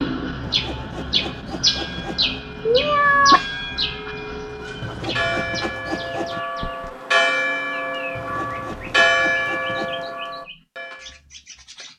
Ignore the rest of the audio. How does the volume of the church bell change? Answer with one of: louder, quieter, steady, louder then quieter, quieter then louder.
louder.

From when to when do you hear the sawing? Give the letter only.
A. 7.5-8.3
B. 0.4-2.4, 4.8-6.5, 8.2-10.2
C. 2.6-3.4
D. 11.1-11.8
B.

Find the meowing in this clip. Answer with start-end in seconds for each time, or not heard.
2.6-3.4.